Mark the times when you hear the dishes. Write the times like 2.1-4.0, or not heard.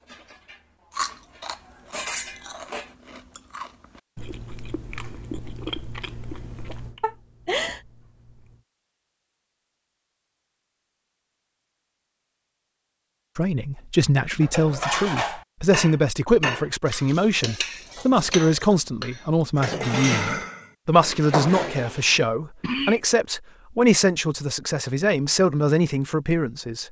0.0-3.0, 14.4-22.2.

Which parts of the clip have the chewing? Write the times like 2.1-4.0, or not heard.
0.9-8.7.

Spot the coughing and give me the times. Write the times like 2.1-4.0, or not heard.
7.0-7.8, 21.8-23.0.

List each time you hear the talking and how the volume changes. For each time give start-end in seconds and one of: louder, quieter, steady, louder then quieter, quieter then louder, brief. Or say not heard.
13.3-26.8 steady.